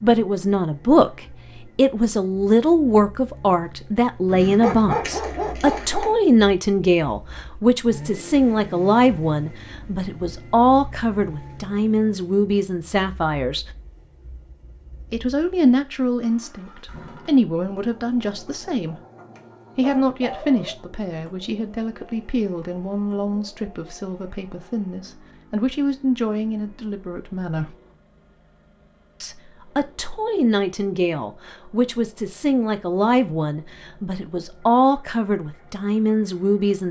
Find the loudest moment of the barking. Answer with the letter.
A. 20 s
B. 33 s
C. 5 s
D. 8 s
C.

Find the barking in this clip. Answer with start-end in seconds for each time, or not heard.
4.2-6.2, 19.4-20.8.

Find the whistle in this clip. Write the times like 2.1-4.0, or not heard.
not heard.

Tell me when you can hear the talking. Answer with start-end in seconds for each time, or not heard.
0.0-13.7, 15.1-18.9, 19.8-27.8, 29.2-36.8.